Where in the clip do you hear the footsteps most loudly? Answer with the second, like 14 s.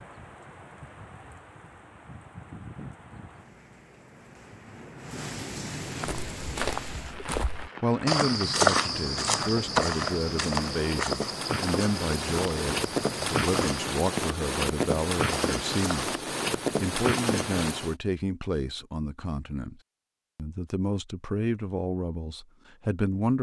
9 s.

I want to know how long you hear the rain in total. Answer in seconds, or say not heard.
18 s.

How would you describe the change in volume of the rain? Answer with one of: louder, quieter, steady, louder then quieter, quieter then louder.
louder.